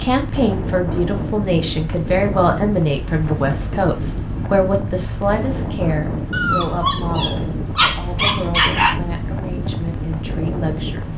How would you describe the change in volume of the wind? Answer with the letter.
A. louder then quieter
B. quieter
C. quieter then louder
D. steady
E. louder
D.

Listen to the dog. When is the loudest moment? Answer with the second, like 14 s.
9 s.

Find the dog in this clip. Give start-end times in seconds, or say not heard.
6.3-9.0.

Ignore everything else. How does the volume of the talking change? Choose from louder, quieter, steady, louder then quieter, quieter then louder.
quieter.